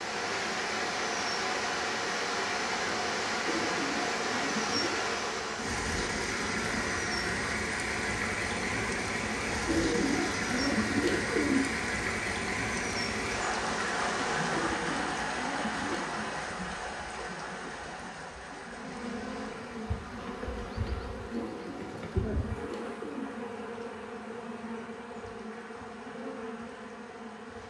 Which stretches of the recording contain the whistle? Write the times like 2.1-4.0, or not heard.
not heard.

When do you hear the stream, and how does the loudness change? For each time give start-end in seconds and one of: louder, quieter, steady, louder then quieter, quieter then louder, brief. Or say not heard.
0.0-27.6 quieter.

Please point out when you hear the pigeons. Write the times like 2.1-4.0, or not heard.
3.5-5.0, 9.7-11.7, 14.5-16.1, 21.3-23.4.